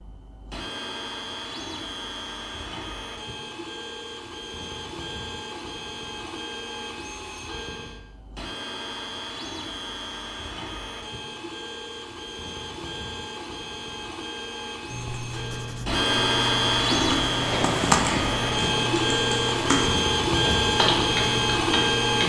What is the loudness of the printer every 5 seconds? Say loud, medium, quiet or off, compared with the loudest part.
quiet, quiet, quiet, loud, loud.